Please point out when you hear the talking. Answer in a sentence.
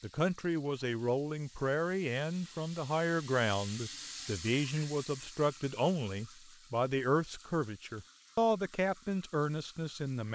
The talking can be heard from 0.0 to 10.2 s.